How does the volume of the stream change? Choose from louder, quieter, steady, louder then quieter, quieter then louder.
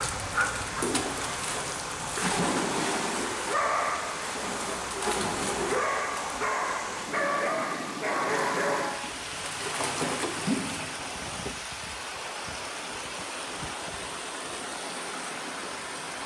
steady.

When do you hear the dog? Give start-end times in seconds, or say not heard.
0.0-11.1.